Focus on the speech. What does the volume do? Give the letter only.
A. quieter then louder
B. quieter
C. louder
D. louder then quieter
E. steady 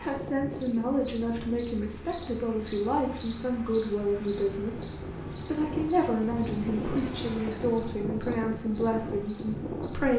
E.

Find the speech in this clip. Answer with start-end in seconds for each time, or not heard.
0.0-4.8, 5.5-10.1.